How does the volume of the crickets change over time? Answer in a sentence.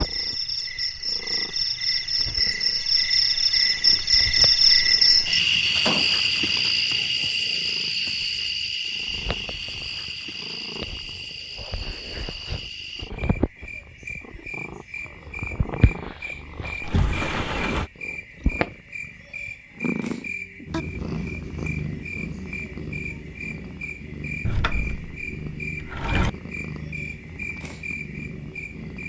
The volume of the crickets goes down.